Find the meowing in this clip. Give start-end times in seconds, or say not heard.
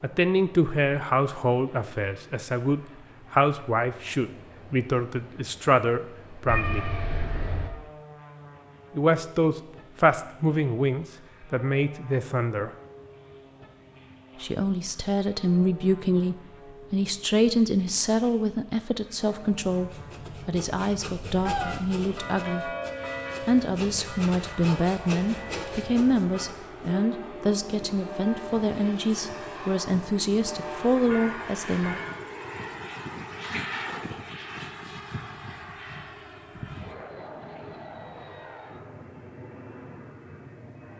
6.5-7.7, 21.4-21.9, 33.4-34.1.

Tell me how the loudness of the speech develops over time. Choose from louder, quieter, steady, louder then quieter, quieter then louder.
steady.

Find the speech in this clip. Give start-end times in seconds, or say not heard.
0.0-6.8, 8.9-12.7, 14.4-22.7, 23.4-32.0.